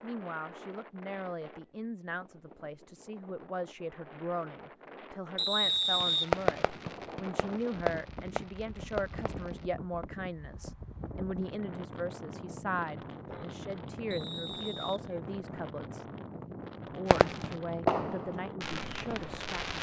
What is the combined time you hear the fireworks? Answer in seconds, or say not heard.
7 s.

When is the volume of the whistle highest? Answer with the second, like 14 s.
6 s.